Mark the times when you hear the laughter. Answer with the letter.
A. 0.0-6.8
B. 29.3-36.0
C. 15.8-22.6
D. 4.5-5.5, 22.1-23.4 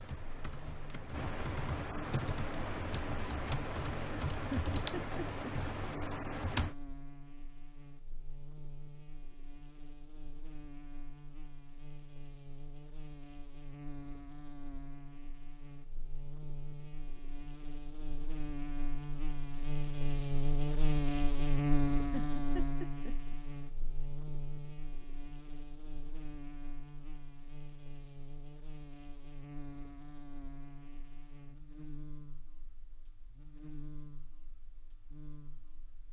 D.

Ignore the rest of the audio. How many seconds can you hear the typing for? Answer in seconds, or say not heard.
7 s.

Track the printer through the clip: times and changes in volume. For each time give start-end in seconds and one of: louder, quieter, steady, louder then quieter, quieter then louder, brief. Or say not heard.
not heard.